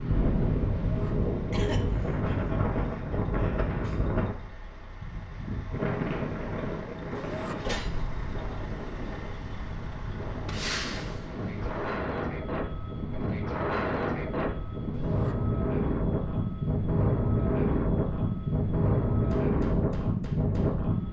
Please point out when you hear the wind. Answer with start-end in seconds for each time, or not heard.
0.0-21.0.